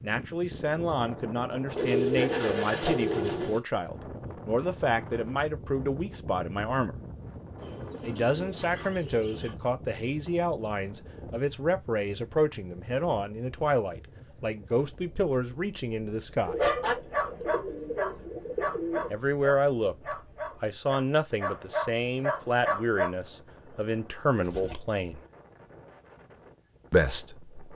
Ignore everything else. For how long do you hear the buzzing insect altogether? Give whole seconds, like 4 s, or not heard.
not heard.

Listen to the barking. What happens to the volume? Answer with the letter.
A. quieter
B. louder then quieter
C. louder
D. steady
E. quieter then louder
E.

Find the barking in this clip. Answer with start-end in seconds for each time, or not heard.
16.6-23.1.